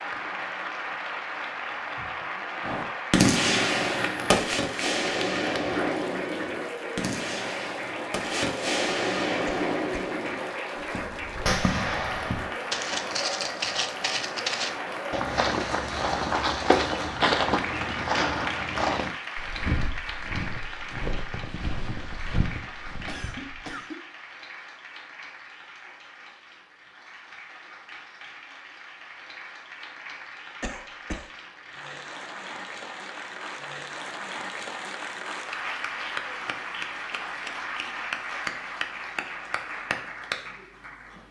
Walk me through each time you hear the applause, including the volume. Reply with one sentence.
The applause can be heard from 0.0 to 41.2 s, getting quieter then louder.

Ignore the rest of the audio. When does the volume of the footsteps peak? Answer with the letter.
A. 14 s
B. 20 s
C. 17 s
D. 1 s
C.